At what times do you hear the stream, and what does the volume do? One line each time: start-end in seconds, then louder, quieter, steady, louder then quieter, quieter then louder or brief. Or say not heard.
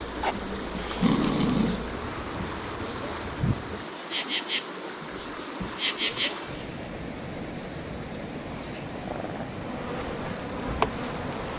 0.0-11.5 steady.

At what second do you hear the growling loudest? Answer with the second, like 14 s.
1 s.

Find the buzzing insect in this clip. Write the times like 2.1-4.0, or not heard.
0.0-6.9, 9.6-11.5.